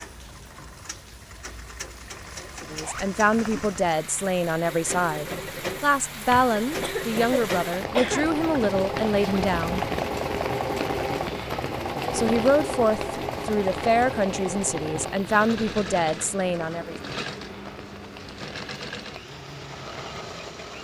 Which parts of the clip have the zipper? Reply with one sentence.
You can hear the zipper from 2.6 to 3.1 s.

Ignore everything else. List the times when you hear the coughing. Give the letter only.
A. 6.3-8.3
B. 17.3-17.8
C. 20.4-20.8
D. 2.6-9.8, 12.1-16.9
A.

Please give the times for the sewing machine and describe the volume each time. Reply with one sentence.
The sewing machine can be heard from 0.0 to 20.8 s, getting louder then quieter.